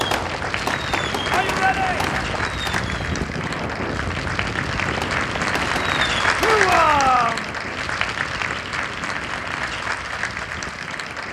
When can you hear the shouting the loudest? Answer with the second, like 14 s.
7 s.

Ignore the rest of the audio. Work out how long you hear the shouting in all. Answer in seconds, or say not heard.
2 s.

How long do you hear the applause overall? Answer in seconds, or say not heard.
11 s.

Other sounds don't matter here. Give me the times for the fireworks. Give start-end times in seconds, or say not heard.
0.0-3.2, 4.8-7.0.